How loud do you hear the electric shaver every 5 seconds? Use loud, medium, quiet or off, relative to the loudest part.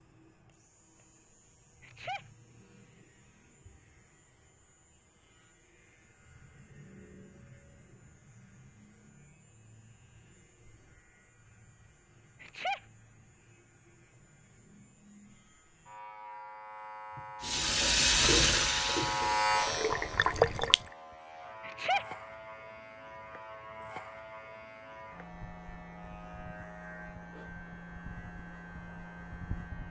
quiet, quiet, quiet, loud, medium, medium.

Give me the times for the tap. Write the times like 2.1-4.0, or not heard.
17.4-20.9.